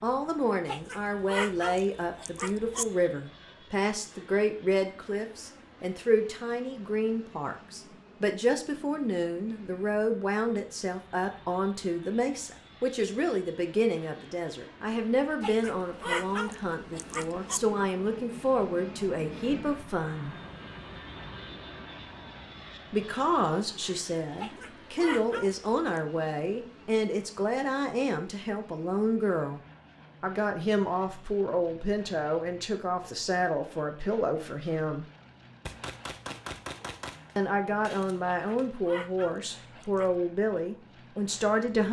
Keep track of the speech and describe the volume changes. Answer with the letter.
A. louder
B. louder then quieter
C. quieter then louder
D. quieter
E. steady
E.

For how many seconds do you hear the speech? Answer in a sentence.
You can hear the speech for 36 seconds altogether.